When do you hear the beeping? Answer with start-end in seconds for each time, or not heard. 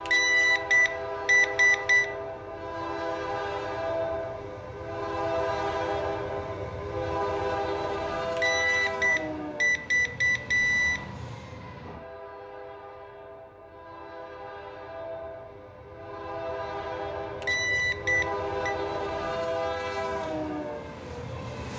0.1-2.0, 8.3-11.0, 17.4-18.8.